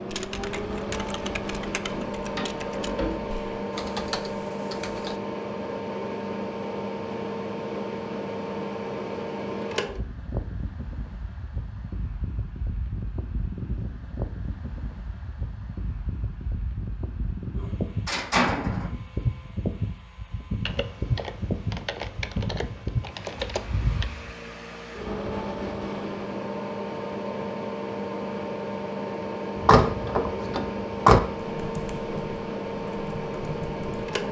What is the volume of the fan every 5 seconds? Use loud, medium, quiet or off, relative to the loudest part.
loud, loud, medium, loud, loud, loud, loud.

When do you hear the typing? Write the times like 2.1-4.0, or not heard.
0.1-5.2, 20.6-24.1, 31.4-34.2.